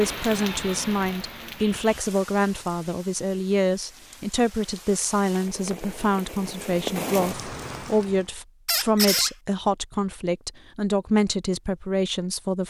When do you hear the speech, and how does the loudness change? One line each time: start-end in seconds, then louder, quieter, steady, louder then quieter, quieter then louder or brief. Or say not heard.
0.0-12.6 steady.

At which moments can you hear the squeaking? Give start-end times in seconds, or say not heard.
8.7-9.3.